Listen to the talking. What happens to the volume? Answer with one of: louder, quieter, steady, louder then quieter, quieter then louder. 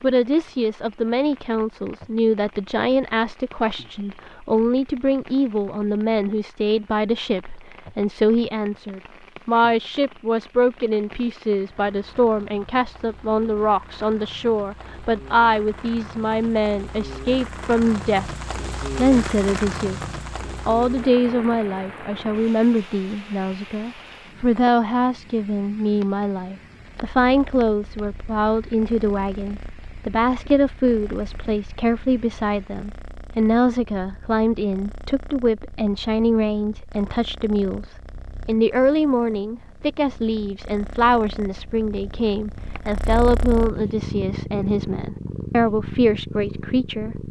steady.